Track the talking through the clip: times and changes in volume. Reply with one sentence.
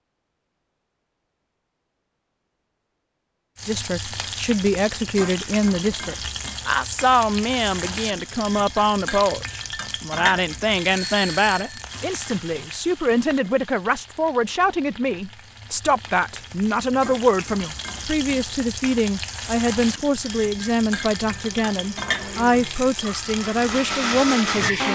The talking can be heard from 3.6 to 24.9 s, at a steady volume.